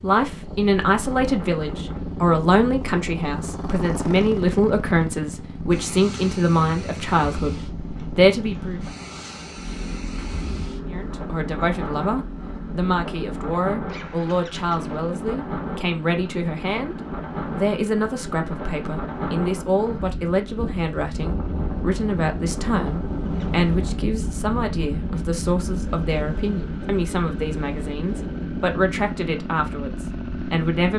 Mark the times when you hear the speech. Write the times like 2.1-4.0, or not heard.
0.0-8.8, 10.9-16.9, 17.6-30.9.